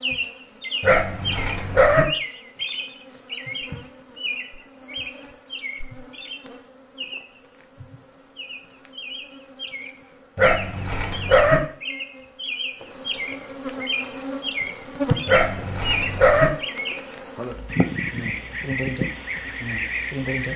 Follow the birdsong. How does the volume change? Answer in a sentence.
The volume of the birdsong goes down, then up.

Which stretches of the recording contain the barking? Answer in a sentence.
The barking can be heard from 0.8 to 2.0 s, from 10.3 to 11.6 s and from 15.2 to 16.5 s.